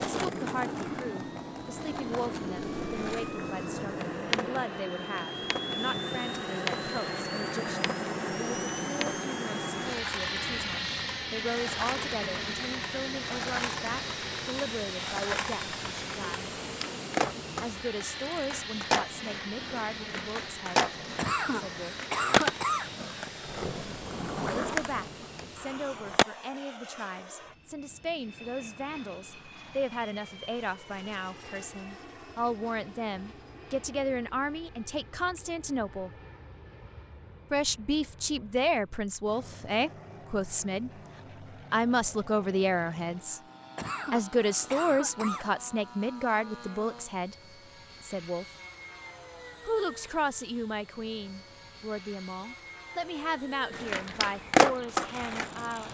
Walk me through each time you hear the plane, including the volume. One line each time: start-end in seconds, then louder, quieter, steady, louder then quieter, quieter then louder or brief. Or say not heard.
0.1-55.8 quieter.